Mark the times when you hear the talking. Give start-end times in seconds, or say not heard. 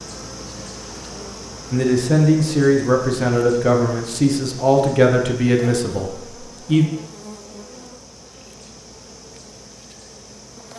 1.7-6.8.